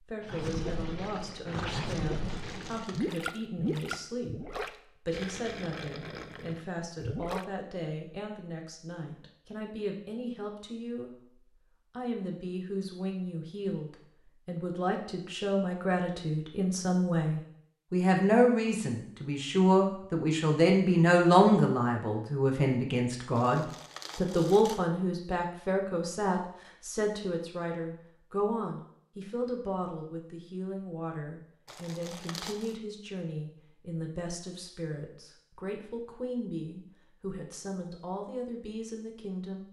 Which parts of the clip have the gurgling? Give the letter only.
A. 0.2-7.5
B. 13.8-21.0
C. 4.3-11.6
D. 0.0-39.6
A.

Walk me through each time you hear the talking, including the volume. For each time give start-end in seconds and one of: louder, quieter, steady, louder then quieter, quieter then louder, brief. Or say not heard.
0.0-39.6 louder then quieter.